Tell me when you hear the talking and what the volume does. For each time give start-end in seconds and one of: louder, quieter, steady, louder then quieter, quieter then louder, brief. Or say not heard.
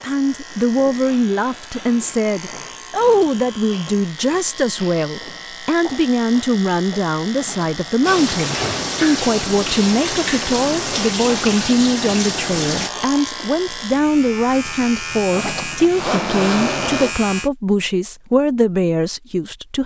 0.0-19.8 steady.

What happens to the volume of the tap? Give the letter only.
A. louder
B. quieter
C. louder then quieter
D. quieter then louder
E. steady
E.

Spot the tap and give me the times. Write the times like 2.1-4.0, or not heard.
8.0-12.9.